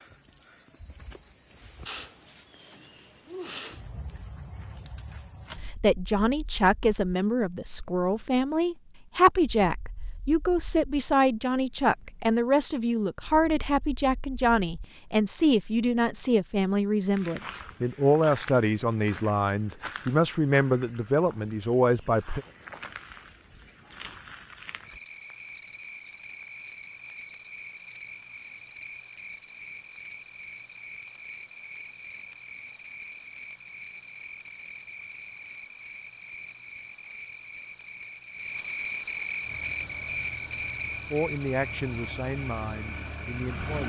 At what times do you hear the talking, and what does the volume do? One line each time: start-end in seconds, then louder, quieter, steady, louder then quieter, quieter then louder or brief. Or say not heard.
5.8-22.4 steady
41.1-43.8 brief.